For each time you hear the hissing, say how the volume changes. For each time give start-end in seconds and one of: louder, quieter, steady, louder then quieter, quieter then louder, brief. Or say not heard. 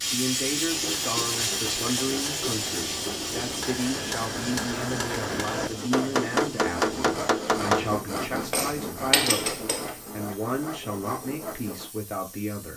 0.0-12.7 quieter.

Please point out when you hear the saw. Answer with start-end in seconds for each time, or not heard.
0.7-11.9.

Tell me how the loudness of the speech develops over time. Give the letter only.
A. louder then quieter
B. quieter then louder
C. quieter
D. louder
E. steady
E.